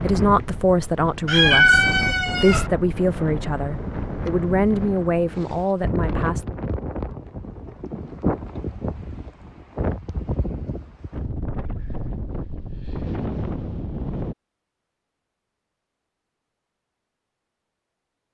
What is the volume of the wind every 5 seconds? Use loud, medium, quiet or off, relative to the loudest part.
loud, loud, loud, off.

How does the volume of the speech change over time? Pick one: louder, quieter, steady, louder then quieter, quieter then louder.
steady.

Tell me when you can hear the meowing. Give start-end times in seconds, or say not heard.
1.2-2.7.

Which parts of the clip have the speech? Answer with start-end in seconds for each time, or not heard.
0.0-6.5.